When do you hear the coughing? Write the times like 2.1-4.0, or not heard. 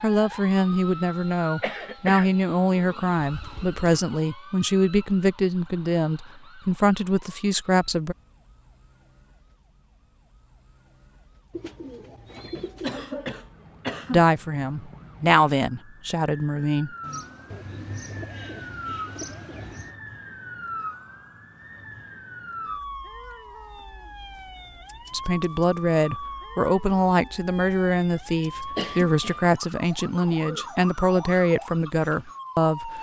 1.6-2.4, 12.6-14.2, 28.8-29.5.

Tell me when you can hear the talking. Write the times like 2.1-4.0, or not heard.
0.0-8.2, 14.1-16.9, 25.1-32.9.